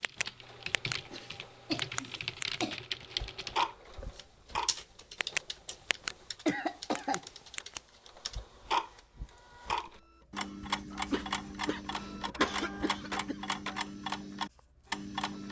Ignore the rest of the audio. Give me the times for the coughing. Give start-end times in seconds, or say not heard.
1.1-2.8, 6.5-7.2, 10.9-13.4.